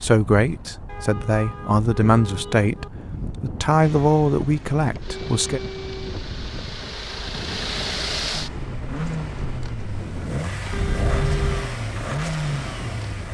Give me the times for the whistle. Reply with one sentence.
You can't hear the whistle here.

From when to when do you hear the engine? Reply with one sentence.
You can hear the engine from 3.8 to 13.2 s.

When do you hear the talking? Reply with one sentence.
You can hear the talking from 0.0 to 5.6 s.